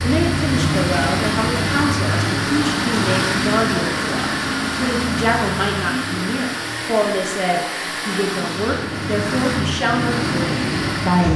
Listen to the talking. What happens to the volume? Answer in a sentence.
The loudness of the talking stays about the same.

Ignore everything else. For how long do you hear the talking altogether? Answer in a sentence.
You can hear the talking for 11 seconds altogether.